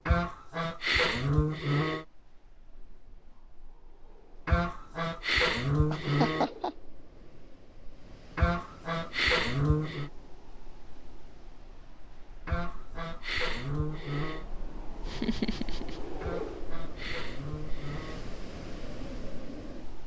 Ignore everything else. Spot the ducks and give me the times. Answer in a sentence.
The ducks can be heard from 0.1 to 2.0 s, from 4.5 to 6.5 s, from 8.3 to 10.1 s, from 12.4 to 14.4 s and from 16.2 to 18.2 s.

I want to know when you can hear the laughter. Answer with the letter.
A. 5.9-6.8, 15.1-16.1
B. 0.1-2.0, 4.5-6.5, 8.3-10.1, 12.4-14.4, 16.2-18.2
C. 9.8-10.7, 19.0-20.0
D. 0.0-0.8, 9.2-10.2
A.